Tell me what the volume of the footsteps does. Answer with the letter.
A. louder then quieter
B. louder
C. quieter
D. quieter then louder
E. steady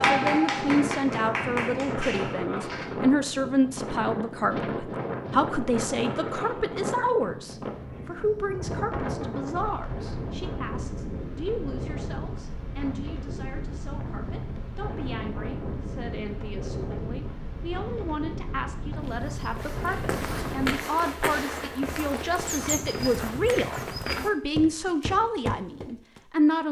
E.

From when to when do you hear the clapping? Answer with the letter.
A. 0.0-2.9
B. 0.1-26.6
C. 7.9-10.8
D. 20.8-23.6
A.